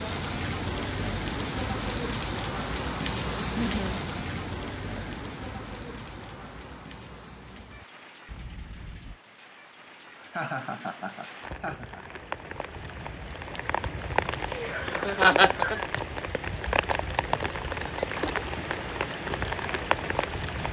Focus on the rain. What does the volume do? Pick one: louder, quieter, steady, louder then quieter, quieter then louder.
quieter then louder.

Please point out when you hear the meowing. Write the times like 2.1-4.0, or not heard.
8.2-9.2.